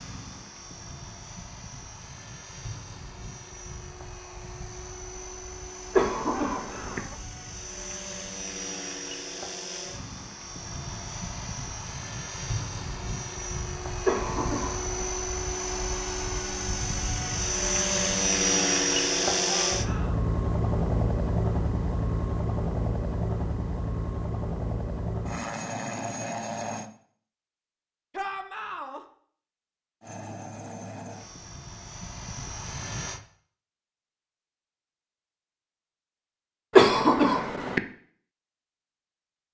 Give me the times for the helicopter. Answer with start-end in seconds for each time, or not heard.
0.0-26.9, 30.0-33.2.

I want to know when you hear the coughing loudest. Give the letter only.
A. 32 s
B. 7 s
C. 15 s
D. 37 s
D.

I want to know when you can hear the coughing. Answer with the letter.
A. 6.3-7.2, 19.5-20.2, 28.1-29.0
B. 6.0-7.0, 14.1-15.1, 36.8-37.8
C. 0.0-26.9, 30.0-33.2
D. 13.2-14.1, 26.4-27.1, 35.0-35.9
B.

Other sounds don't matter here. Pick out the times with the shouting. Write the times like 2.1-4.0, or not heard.
6.3-7.2, 19.5-20.2, 28.1-29.0.